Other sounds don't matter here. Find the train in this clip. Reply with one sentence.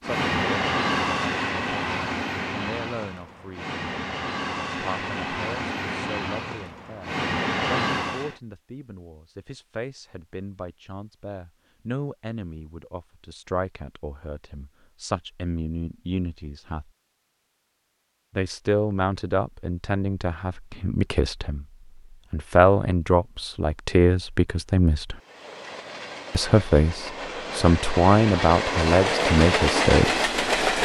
You can hear the train from 0.0 to 8.3 s and from 25.1 to 30.7 s.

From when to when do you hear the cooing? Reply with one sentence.
The cooing can't be heard in this clip.